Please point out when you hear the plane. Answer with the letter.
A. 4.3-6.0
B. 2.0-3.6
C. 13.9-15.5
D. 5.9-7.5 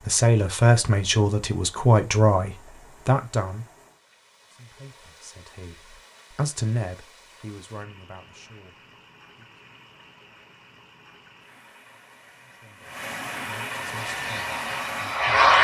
C.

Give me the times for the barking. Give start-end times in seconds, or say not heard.
not heard.